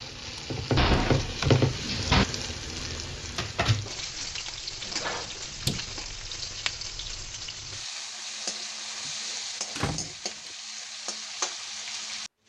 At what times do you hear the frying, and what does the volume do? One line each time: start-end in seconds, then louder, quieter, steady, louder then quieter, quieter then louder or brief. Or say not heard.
0.0-12.3 quieter.